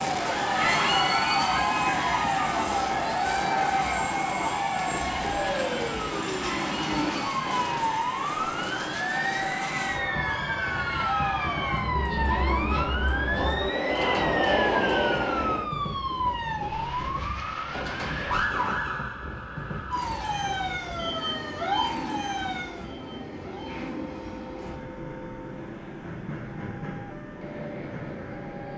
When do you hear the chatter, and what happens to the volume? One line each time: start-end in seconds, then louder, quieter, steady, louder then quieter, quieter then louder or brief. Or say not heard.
0.1-15.7 quieter then louder.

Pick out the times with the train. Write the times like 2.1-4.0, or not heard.
0.0-28.7.